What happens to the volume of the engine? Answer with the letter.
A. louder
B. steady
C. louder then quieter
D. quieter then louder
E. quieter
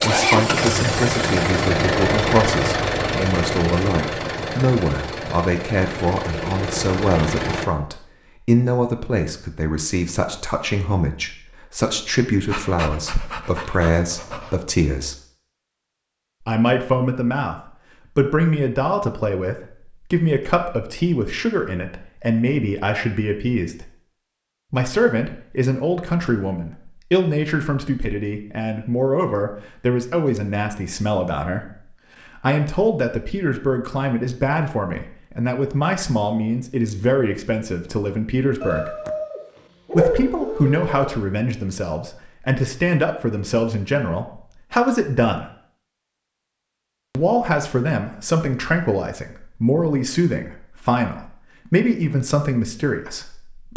E.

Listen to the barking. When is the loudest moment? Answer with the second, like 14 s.
40 s.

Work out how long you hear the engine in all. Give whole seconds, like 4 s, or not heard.
8 s.